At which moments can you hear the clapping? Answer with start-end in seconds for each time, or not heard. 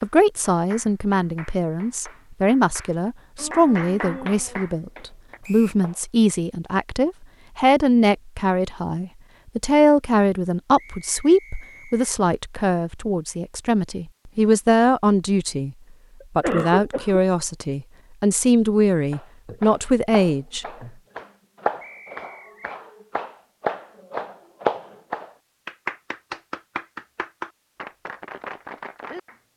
0.0-6.0, 19.1-29.4.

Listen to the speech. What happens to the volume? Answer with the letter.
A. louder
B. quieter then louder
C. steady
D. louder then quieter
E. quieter
C.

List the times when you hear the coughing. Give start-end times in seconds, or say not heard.
16.2-17.2.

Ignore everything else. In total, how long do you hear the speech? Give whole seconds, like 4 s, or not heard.
20 s.